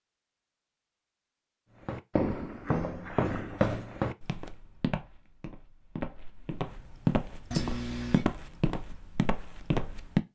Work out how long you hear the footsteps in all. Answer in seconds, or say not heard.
8 s.